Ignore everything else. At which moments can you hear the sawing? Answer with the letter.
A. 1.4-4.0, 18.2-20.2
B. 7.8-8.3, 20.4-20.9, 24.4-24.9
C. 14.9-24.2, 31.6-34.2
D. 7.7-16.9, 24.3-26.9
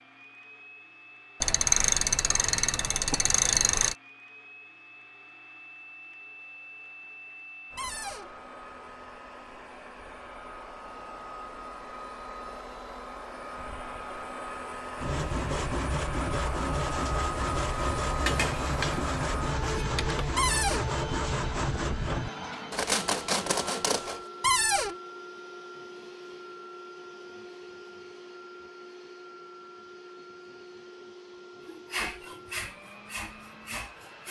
C.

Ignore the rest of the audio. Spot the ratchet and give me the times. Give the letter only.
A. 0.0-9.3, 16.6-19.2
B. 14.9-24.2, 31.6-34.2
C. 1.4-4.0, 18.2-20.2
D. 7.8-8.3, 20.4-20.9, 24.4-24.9
C.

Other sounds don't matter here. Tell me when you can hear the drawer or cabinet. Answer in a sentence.
You can hear the drawer or cabinet from 7.8 to 8.3 s, from 20.4 to 20.9 s and from 24.4 to 24.9 s.